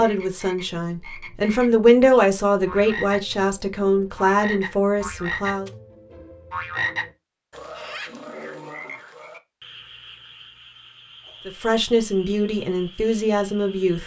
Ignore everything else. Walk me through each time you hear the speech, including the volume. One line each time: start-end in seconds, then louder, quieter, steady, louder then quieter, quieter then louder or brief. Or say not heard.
0.0-5.7 louder then quieter
11.4-14.0 brief.